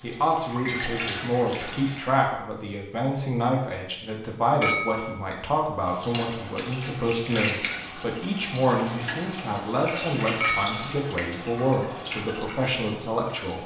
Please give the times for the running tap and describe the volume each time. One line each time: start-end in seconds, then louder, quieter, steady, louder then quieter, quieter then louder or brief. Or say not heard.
0.0-2.1 brief
5.8-13.6 steady.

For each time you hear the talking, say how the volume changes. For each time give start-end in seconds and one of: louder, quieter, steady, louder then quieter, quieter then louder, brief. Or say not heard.
0.0-13.6 steady.